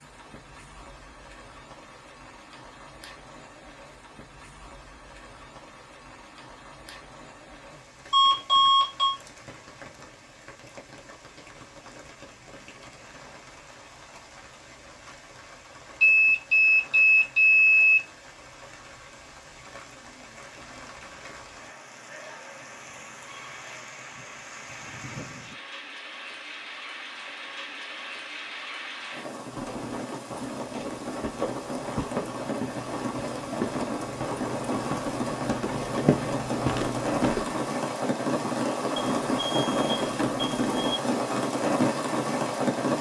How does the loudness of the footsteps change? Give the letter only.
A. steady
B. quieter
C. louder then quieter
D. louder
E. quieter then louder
D.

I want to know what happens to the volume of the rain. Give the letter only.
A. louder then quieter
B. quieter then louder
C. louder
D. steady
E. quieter
C.